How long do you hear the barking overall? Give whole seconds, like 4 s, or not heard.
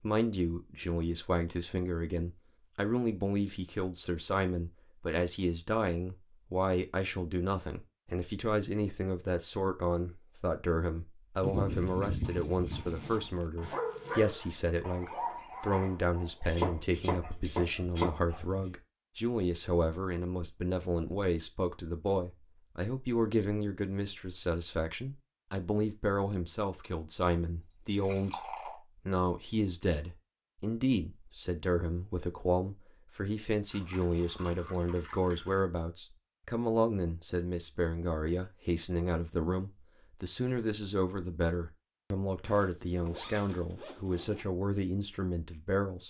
5 s.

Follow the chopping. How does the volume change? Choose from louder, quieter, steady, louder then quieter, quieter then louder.
louder.